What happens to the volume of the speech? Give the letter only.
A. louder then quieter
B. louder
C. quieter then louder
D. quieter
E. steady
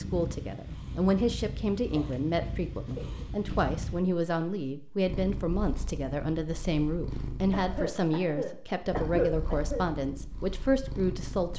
E.